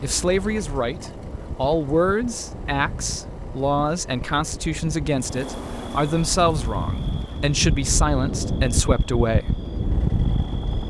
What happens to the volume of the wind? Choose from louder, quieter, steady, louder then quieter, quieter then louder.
louder.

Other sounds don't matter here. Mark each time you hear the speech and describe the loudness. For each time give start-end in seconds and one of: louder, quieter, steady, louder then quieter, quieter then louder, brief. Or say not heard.
0.0-9.6 steady.